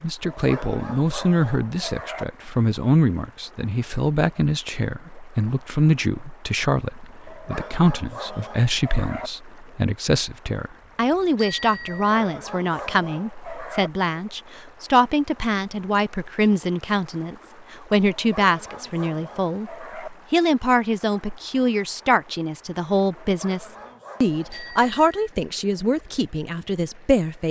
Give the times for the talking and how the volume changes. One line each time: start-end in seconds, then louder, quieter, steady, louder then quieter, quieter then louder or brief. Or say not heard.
0.0-27.4 steady.